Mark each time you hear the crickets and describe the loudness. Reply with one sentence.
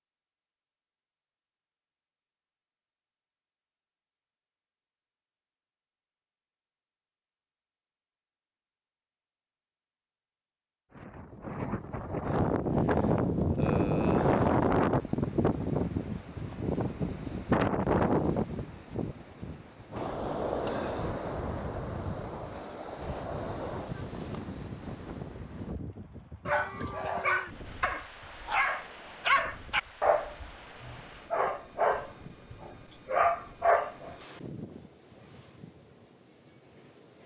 The crickets can't be heard in this clip.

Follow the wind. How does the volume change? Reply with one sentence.
The volume of the wind goes down.